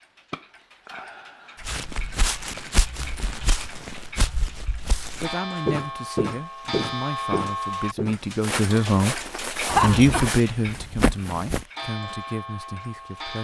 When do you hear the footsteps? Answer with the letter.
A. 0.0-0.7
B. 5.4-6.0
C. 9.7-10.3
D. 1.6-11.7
D.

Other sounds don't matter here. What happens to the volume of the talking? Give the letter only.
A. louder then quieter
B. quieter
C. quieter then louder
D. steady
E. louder
A.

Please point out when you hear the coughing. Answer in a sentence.
The coughing can be heard from 9.7 to 10.3 s.